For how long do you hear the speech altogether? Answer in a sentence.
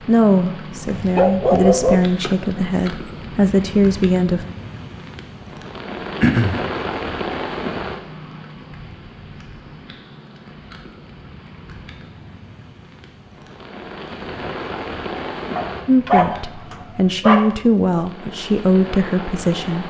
You can hear the speech for 8 seconds altogether.